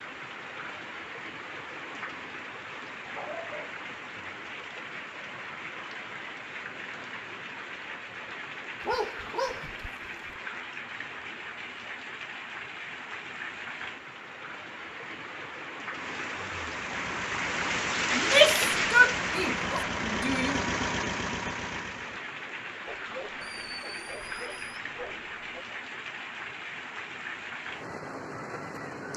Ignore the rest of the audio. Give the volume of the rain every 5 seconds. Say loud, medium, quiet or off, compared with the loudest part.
medium, medium, medium, loud, medium, medium.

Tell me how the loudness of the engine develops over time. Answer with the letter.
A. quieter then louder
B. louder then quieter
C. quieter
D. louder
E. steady
D.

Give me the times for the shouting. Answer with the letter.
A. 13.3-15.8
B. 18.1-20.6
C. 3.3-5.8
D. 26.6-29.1
B.